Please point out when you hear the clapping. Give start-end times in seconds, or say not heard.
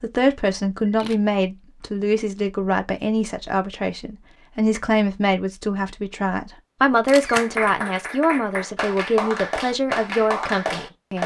7.2-11.2.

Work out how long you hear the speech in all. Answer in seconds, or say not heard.
11 s.